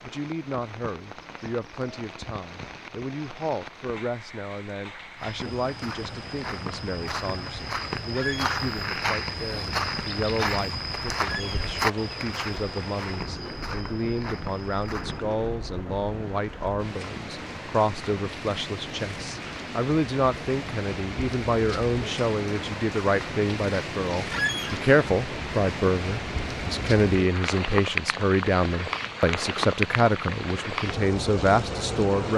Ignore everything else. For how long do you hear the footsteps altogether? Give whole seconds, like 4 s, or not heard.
10 s.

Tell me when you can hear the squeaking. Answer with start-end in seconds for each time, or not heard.
8.1-8.5, 11.2-11.7, 24.3-24.8.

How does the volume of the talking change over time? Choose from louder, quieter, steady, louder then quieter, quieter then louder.
louder.